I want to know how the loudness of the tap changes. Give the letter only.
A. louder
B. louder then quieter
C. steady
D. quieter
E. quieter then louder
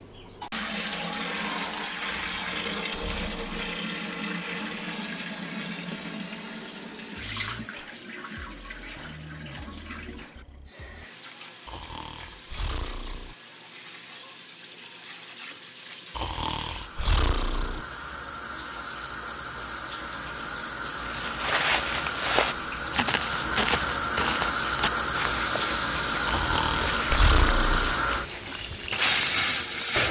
E.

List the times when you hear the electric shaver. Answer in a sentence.
You can't hear the electric shaver here.